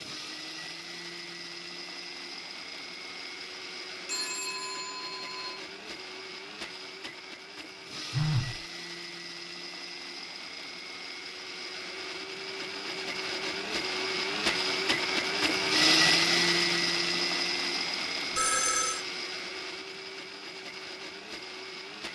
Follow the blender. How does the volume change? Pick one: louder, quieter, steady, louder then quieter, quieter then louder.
louder then quieter.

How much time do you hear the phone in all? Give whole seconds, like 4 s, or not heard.
3 s.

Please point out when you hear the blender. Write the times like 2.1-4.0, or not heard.
0.0-22.1.